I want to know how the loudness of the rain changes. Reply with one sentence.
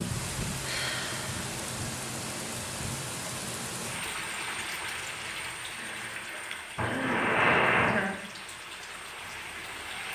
The loudness of the rain goes down.